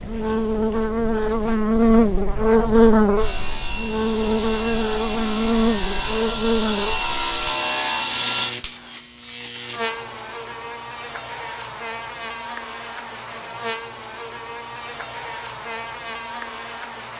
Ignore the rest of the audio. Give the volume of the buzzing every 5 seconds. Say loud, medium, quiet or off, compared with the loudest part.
loud, medium, quiet, quiet.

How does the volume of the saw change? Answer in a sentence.
The loudness of the saw goes up.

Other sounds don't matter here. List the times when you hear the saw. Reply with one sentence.
The saw can be heard from 3.1 to 8.6 s.